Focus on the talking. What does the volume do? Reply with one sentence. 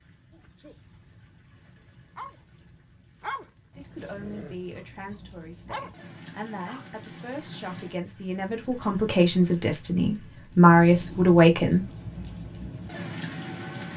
The volume of the talking goes up.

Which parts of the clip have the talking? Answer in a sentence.
The talking can be heard from 3.8 to 11.9 s.